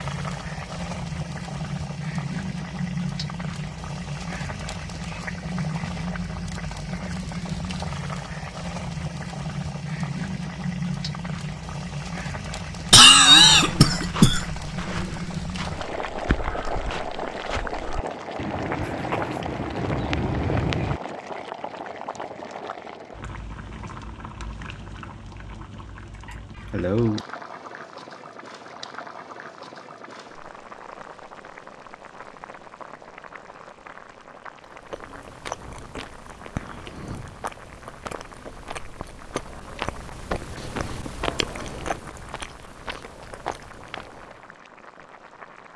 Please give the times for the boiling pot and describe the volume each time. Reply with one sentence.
You can hear the boiling pot from 0.0 to 45.7 s, getting quieter.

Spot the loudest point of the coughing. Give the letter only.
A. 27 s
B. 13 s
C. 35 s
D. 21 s
B.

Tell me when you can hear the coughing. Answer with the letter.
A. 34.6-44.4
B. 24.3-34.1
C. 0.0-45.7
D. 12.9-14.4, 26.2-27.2
D.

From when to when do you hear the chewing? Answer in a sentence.
You can hear the chewing from 34.6 to 44.4 s.